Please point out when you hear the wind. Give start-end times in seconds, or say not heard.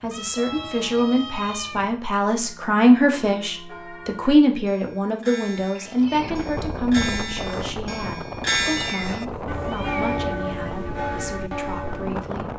6.0-12.5.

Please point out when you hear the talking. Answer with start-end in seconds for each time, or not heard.
0.0-12.5.